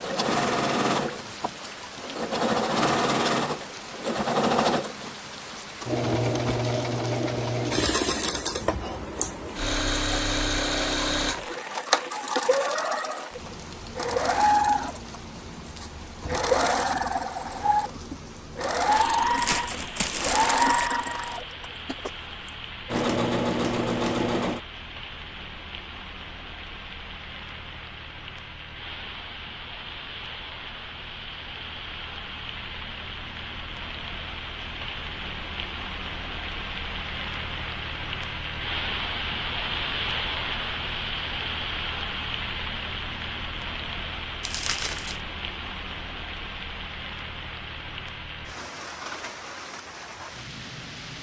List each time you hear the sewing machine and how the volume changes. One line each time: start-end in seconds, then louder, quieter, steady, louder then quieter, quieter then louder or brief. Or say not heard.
0.0-24.6 steady.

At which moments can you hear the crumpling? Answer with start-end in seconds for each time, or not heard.
19.1-20.9, 44.4-45.2.